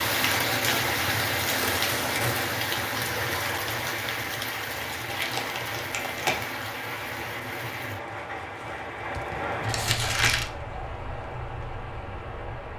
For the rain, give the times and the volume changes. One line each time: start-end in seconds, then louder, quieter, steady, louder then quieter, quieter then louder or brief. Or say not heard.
0.0-12.7 quieter.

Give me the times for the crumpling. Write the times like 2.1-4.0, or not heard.
1.4-2.5, 5.1-6.5, 9.6-10.5.